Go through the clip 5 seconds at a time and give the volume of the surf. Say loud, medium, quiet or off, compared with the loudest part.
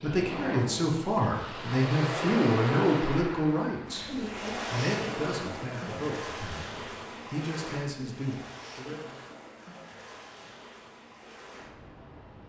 loud, medium, quiet.